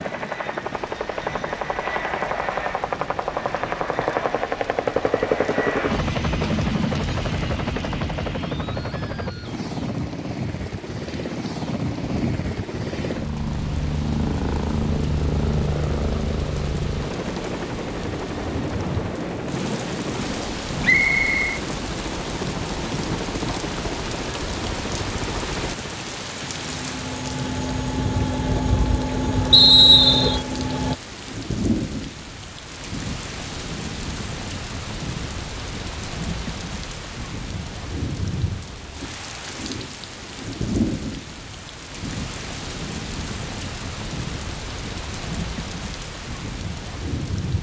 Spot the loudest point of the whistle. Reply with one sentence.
The loudest moment of the whistle is at 30 seconds.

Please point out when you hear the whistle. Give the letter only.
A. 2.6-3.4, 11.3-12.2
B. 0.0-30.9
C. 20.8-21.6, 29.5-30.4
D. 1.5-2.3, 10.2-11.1
C.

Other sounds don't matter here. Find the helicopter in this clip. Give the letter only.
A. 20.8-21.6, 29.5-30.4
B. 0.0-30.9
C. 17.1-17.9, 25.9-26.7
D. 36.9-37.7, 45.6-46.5
B.